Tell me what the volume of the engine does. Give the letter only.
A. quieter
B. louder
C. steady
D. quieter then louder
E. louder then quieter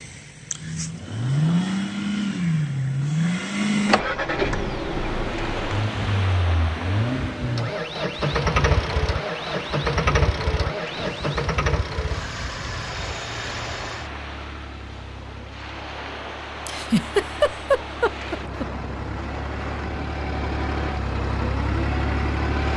D.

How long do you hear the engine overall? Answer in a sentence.
You can hear the engine for 23 seconds altogether.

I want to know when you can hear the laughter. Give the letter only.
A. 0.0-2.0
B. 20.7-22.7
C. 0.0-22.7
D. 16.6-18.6
D.